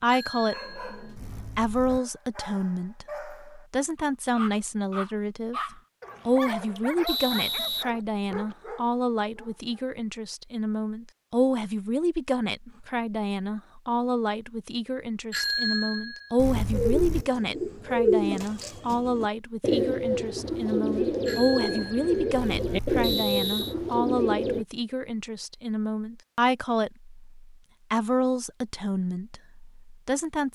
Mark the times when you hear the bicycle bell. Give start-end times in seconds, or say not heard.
0.1-2.0, 15.3-17.2, 21.2-23.1.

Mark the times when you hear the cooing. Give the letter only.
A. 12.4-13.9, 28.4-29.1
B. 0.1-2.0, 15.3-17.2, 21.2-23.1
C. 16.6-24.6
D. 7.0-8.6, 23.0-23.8
C.